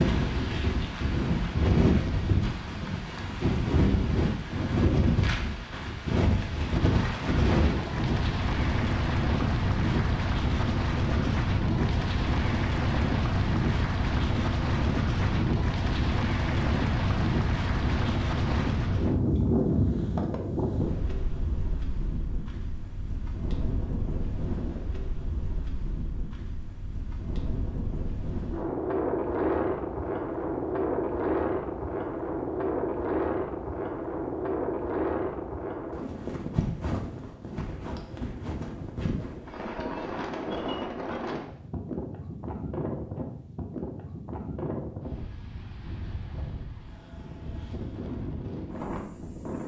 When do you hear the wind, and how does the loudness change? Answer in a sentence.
You can hear the wind from 0.0 to 49.6 s, getting quieter.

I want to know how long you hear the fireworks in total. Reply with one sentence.
You can't hear the fireworks here.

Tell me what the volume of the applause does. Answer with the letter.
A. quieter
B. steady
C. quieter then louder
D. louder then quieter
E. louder
B.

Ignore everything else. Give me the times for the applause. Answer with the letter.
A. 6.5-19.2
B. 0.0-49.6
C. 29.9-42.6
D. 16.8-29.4
A.